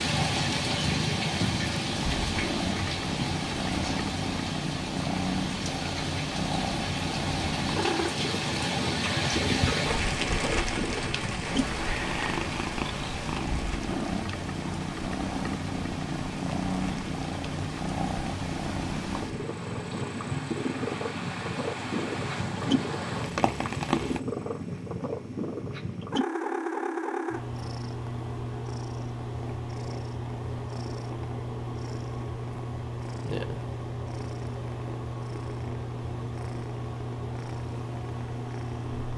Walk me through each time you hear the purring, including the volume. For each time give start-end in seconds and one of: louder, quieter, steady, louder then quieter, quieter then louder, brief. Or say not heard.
0.0-39.1 steady.